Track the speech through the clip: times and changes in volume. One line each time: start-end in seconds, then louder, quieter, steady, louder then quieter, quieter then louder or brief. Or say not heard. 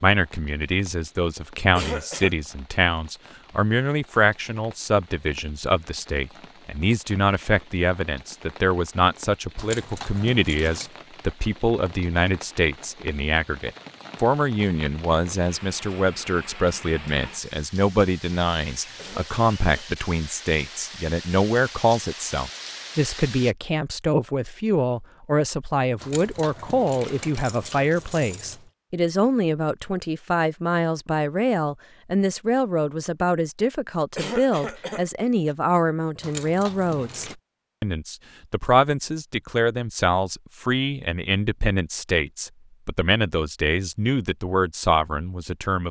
0.0-45.8 steady.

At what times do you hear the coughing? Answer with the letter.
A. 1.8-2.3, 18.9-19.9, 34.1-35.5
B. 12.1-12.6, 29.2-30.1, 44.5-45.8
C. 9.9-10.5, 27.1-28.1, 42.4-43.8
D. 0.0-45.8
A.